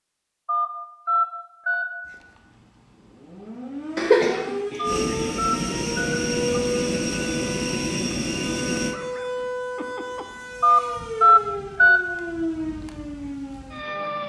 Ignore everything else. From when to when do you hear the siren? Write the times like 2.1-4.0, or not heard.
2.0-14.2.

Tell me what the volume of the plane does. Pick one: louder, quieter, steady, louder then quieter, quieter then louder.
steady.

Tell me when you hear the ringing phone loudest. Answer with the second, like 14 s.
11 s.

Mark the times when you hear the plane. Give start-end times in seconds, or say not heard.
4.8-8.9.